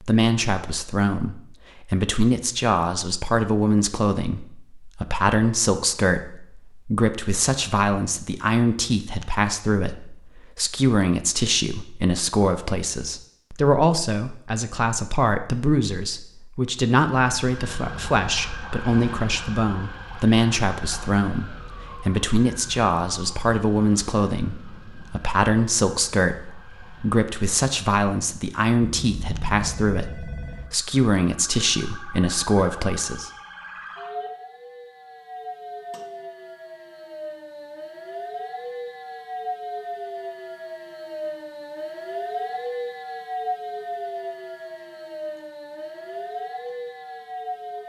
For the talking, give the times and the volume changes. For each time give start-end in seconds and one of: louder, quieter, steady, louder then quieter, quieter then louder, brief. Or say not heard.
0.0-33.3 steady.